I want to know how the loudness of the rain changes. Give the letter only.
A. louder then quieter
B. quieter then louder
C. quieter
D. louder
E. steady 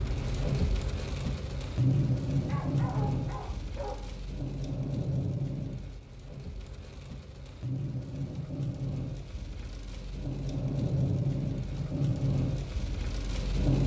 B.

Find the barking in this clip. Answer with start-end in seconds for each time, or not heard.
2.5-4.0.